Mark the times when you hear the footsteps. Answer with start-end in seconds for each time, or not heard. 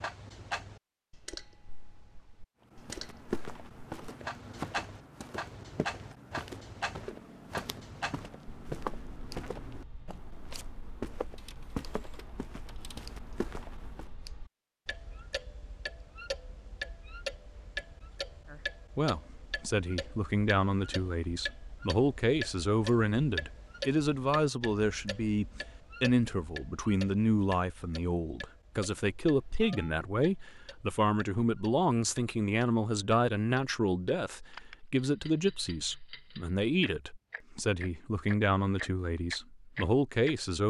2.7-14.1.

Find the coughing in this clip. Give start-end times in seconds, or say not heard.
not heard.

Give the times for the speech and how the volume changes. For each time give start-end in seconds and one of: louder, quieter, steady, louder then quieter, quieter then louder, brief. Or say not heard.
18.5-40.6 steady.